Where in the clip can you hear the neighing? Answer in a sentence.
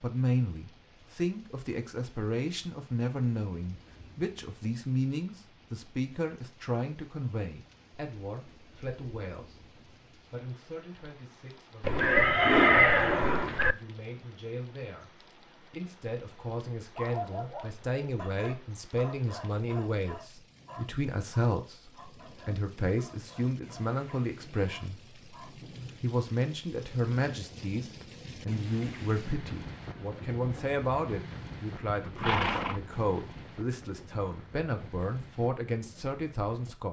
You can hear the neighing from 11.8 to 13.8 s and from 31.9 to 33.6 s.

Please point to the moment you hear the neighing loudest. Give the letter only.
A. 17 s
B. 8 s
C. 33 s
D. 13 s
D.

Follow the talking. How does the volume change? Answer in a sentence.
The loudness of the talking goes down, then up.